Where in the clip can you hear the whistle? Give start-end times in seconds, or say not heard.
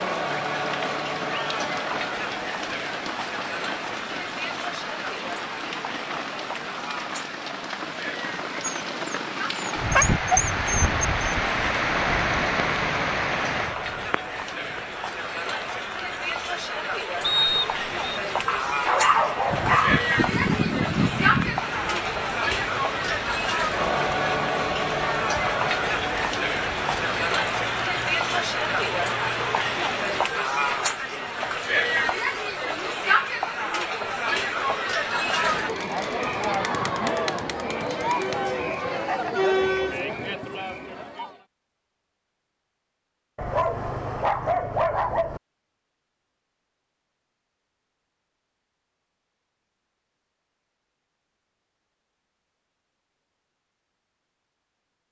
17.2-18.1.